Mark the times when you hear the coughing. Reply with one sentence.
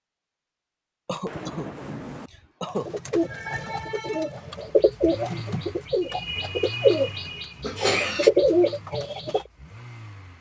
The coughing can be heard from 1.1 to 2.9 s and from 7.6 to 8.3 s.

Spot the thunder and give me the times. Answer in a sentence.
The thunder can be heard from 1.2 to 2.3 s.